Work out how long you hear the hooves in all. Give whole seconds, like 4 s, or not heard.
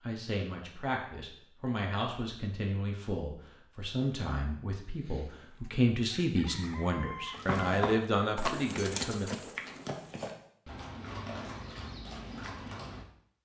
6 s.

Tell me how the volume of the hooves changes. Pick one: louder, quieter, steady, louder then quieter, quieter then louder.
quieter.